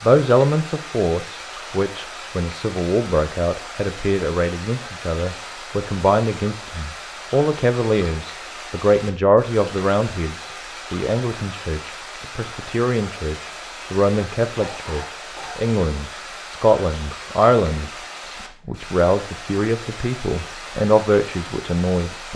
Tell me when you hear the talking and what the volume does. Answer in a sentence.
You can hear the talking from 0.0 to 22.3 s, at a steady volume.